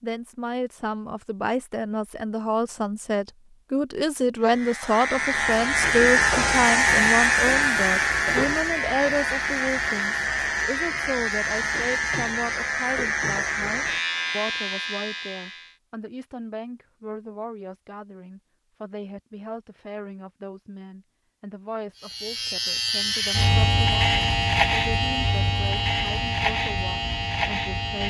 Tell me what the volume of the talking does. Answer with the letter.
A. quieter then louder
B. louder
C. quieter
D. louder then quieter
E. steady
C.